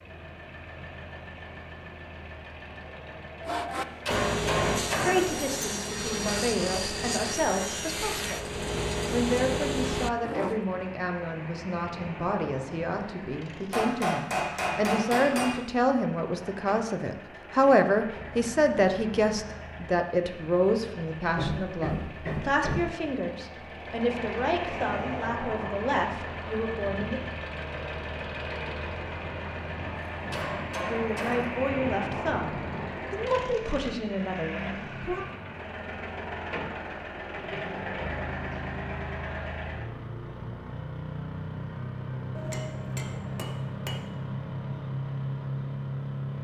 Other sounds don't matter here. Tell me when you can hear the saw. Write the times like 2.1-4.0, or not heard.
3.4-10.7.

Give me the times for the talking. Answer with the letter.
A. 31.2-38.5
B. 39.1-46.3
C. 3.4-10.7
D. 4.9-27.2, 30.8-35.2
D.